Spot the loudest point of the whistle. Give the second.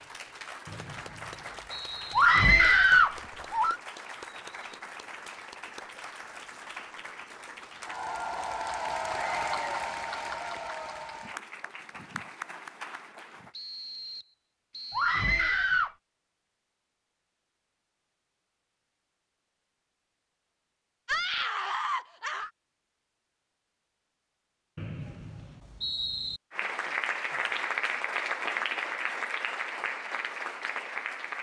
26 s.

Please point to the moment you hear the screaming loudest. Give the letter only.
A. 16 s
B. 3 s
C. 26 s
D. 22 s
B.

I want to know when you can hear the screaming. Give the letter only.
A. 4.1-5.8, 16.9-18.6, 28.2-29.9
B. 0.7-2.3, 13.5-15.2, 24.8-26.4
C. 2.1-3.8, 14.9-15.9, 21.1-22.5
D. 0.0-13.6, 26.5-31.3
C.